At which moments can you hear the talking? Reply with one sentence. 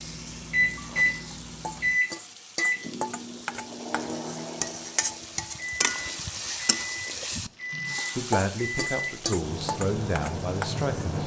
You can hear the talking from 8.2 to 11.2 s.